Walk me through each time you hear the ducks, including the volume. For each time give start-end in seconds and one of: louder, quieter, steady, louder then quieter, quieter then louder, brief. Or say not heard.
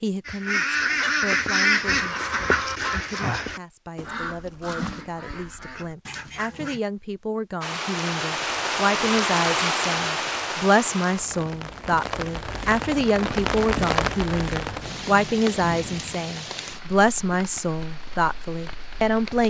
0.2-6.8 quieter.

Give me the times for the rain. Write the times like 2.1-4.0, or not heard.
7.6-19.4.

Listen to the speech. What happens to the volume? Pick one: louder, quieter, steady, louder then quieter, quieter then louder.
louder.